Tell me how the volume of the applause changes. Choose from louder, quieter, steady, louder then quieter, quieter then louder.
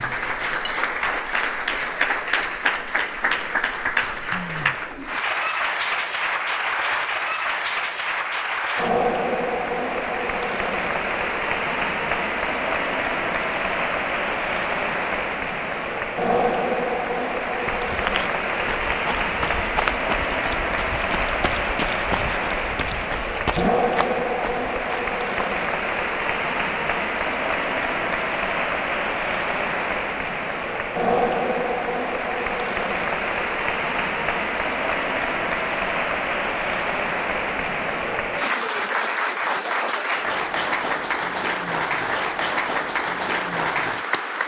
steady.